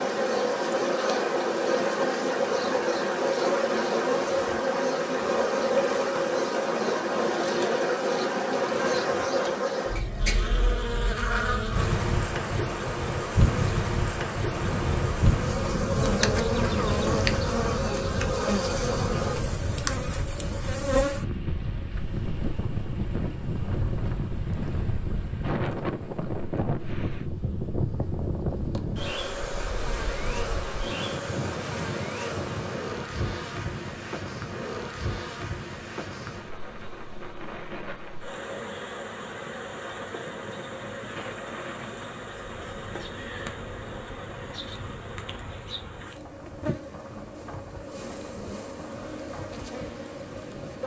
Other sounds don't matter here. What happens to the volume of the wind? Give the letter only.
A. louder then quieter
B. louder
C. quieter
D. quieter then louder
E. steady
C.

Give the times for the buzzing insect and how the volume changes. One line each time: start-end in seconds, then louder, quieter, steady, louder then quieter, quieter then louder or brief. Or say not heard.
0.0-50.8 quieter.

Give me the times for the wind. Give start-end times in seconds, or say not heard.
14.4-50.8.